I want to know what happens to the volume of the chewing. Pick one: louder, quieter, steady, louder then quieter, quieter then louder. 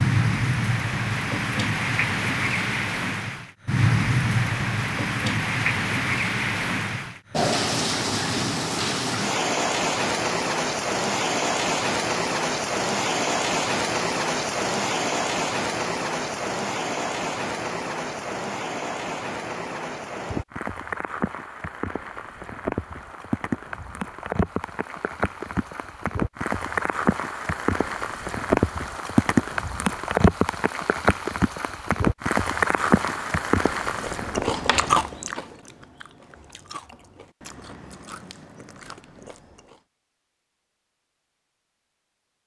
louder then quieter.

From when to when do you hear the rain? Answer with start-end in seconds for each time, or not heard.
0.0-34.5.